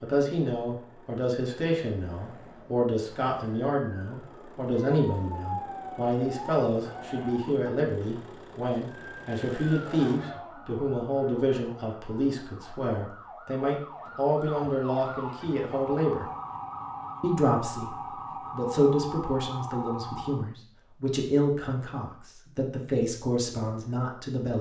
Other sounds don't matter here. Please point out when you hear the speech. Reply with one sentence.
The speech can be heard from 0.0 to 16.2 s and from 17.2 to 24.5 s.